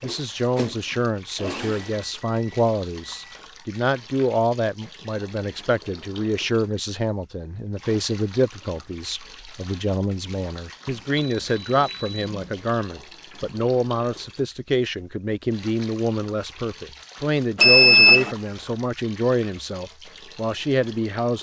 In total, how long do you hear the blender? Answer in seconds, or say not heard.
2 s.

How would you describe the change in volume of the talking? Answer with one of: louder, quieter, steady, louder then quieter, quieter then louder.
steady.